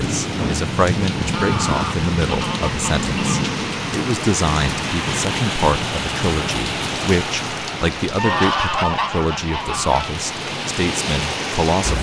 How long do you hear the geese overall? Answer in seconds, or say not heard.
4 s.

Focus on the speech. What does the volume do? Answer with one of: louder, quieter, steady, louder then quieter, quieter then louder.
steady.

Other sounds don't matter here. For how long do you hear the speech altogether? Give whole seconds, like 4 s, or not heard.
12 s.